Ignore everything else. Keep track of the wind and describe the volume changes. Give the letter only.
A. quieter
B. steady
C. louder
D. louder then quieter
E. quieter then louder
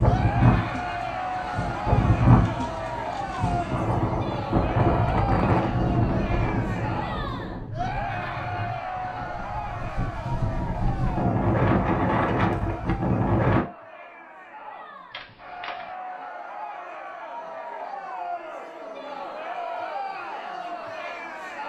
E.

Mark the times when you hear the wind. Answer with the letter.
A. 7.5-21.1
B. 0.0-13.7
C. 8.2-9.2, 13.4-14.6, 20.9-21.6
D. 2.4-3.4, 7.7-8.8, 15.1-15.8
B.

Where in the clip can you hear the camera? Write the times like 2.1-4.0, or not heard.
2.4-3.4, 7.7-8.8, 15.1-15.8.